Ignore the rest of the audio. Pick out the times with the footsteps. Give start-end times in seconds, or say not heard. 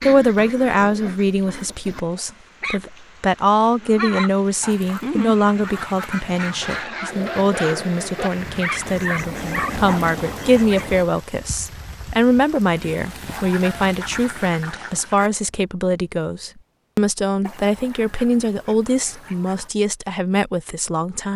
not heard.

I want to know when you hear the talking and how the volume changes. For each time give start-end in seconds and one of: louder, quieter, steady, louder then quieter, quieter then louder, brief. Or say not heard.
0.0-21.3 steady.